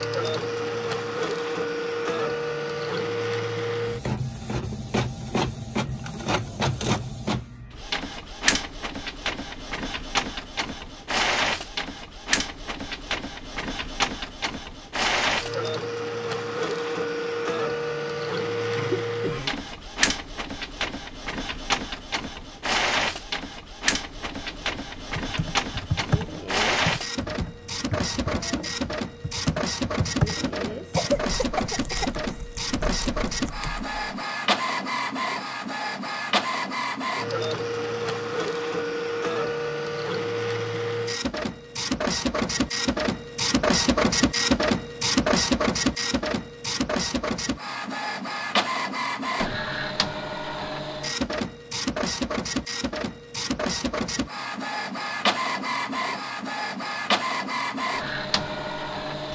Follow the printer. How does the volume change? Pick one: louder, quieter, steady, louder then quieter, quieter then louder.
steady.